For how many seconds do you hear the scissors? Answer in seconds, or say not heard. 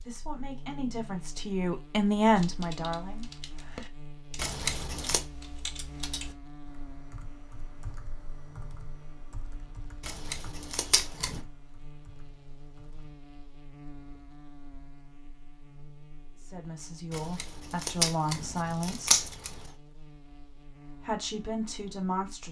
5 s.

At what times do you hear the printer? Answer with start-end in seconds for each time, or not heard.
not heard.